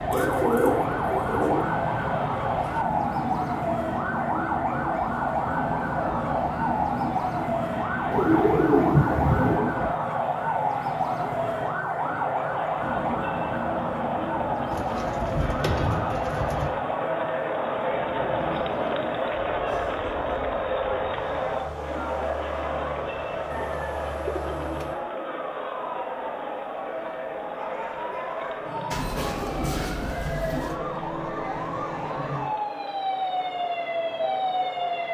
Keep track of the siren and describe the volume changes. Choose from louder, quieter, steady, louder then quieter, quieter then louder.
quieter then louder.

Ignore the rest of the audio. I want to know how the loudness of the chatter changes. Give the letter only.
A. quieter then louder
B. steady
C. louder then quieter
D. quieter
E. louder
C.